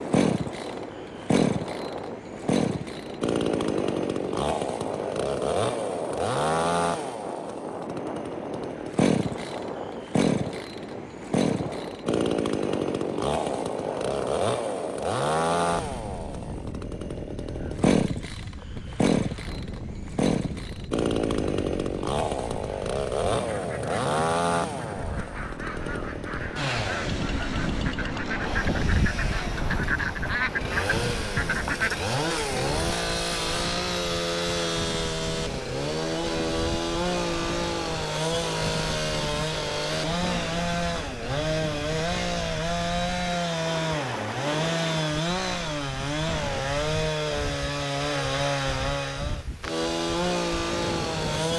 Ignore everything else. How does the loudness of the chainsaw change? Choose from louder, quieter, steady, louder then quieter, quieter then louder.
steady.